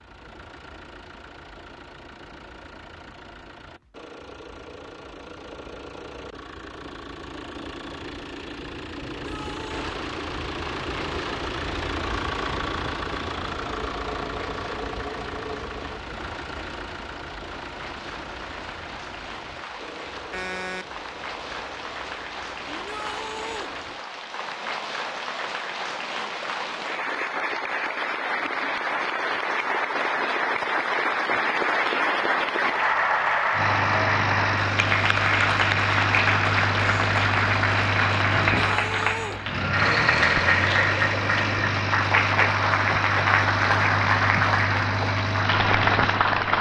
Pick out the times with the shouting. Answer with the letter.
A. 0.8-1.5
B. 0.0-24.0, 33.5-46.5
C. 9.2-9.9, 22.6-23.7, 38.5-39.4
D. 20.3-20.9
C.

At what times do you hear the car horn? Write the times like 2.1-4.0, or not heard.
20.3-20.9.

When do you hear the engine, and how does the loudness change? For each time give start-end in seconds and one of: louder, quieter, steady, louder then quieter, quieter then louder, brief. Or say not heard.
0.0-24.0 louder then quieter
33.5-46.5 steady.